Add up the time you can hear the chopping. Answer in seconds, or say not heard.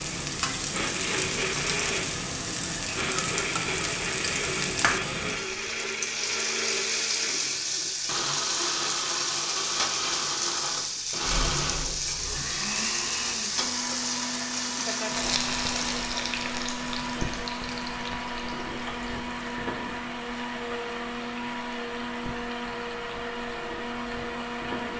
not heard.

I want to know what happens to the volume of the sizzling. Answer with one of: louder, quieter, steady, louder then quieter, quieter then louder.
quieter.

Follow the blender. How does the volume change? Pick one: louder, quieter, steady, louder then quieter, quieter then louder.
steady.